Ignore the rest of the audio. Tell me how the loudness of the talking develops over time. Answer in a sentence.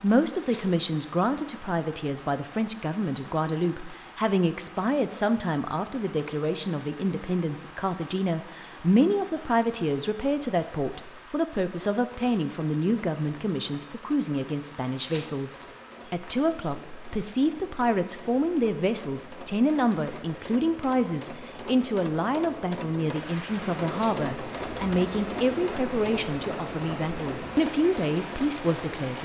The volume of the talking stays about the same.